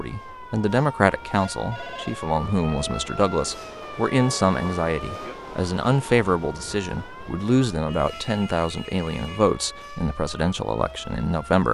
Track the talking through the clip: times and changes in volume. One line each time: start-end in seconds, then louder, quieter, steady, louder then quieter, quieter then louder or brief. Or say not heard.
0.0-11.6 steady.